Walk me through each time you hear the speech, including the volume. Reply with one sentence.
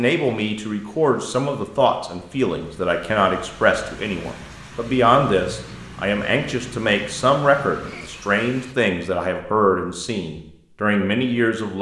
You can hear the speech from 0.0 to 11.7 s, at a steady volume.